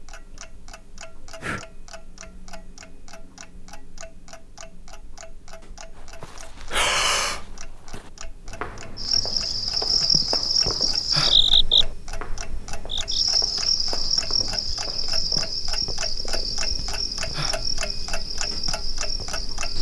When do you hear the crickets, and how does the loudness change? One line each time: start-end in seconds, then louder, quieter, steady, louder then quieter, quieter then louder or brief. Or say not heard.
8.9-19.7 quieter.